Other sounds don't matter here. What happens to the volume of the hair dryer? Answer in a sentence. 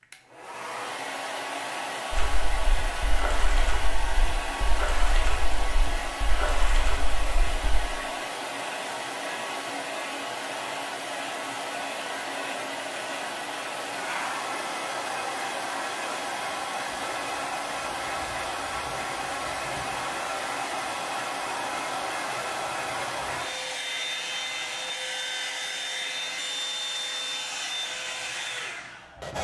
The loudness of the hair dryer stays about the same.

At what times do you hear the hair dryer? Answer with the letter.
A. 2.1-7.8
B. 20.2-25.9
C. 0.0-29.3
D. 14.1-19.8
C.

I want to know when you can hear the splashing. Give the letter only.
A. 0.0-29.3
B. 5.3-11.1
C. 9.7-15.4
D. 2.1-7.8
D.